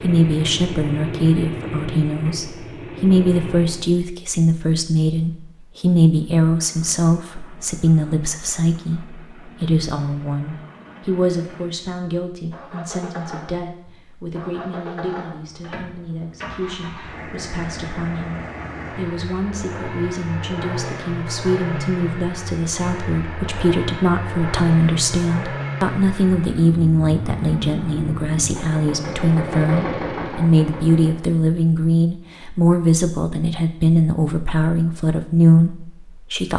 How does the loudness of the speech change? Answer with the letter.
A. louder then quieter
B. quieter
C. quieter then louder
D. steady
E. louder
C.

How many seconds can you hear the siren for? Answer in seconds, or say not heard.
not heard.